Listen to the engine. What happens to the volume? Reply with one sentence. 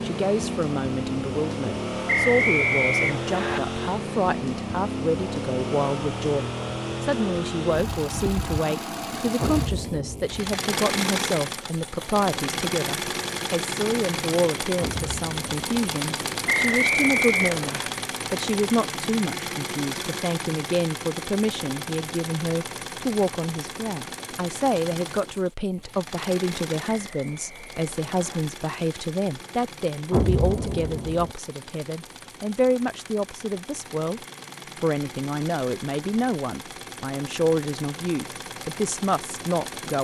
The volume of the engine goes down.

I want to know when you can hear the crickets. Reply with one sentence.
The crickets can't be heard in this clip.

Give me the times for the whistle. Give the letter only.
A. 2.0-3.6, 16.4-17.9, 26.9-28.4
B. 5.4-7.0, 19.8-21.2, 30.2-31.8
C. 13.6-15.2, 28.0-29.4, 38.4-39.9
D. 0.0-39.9
A.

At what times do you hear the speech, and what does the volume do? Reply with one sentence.
The speech can be heard from 0.0 to 39.9 s, at a steady volume.